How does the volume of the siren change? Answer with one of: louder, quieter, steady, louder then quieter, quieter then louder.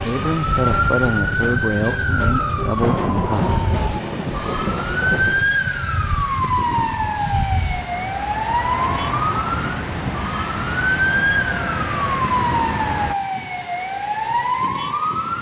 steady.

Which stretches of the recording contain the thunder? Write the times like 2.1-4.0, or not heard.
2.8-5.5.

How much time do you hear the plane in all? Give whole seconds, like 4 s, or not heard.
13 s.